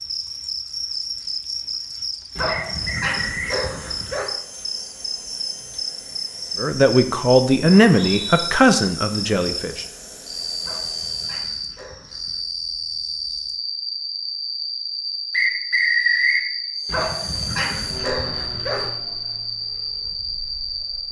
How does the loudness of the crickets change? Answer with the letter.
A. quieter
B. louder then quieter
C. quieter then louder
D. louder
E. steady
E.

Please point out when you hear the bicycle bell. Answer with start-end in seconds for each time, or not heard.
not heard.